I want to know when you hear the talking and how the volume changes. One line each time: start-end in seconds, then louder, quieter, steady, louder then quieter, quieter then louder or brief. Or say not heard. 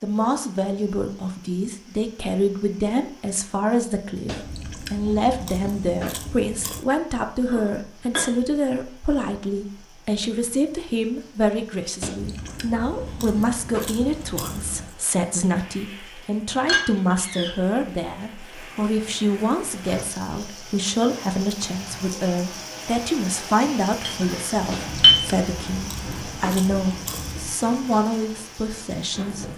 0.0-29.4 steady.